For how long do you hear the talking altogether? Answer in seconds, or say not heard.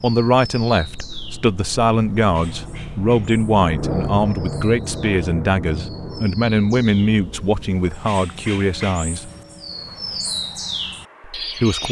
10 s.